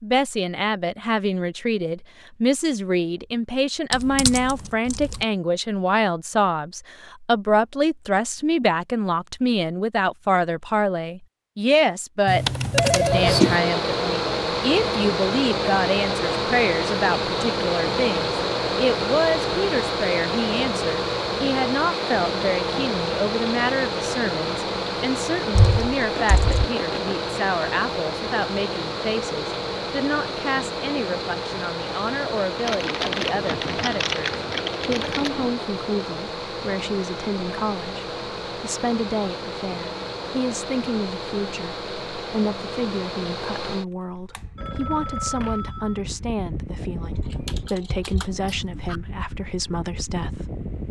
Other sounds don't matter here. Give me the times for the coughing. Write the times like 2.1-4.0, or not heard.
not heard.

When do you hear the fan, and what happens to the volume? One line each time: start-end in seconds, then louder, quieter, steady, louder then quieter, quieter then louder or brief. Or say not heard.
13.0-50.8 quieter.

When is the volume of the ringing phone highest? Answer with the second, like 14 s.
13 s.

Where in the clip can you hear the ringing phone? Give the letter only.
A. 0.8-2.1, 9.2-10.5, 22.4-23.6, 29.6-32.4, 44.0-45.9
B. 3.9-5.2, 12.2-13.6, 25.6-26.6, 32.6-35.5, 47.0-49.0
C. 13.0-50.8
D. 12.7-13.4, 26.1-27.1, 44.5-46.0
D.